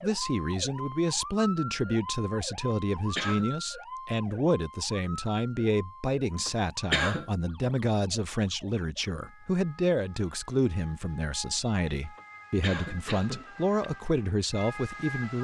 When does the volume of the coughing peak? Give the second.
7 s.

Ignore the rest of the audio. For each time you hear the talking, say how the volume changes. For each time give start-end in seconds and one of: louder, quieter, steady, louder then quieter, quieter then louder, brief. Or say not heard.
0.0-15.3 steady.